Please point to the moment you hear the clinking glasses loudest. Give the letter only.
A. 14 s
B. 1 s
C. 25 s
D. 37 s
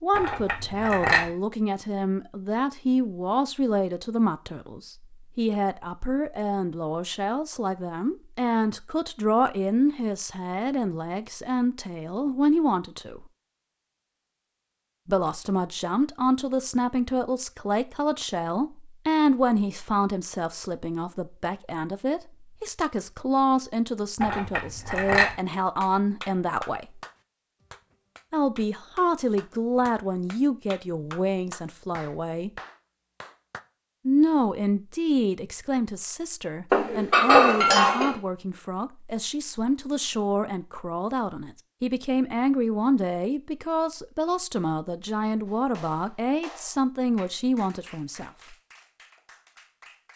D.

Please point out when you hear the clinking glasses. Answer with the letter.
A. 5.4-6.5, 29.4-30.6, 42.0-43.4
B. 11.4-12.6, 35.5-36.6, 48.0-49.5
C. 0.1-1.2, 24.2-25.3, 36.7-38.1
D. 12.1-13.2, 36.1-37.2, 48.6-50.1
C.